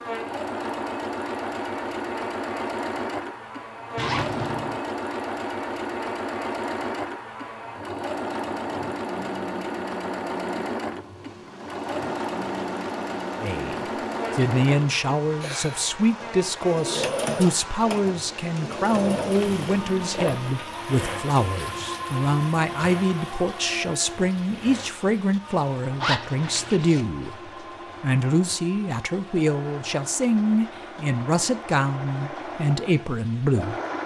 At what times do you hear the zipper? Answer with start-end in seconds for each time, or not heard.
4.0-4.8, 19.4-20.6, 26.0-27.1.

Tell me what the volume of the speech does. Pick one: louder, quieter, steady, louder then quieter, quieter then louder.
steady.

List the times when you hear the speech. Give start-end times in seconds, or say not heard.
13.4-33.8.